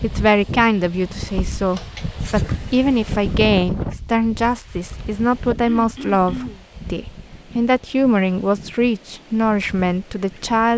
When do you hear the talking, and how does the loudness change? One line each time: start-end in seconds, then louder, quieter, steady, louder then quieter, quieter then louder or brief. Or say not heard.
0.0-10.7 steady.